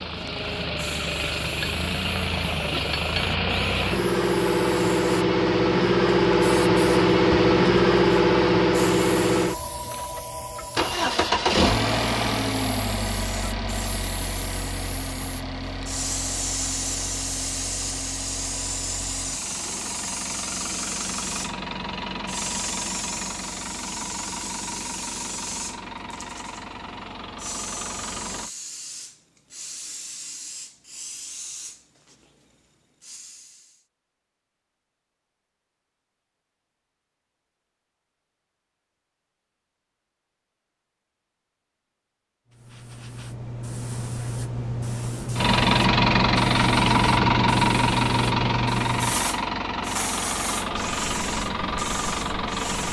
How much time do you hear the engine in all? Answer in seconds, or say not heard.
36 s.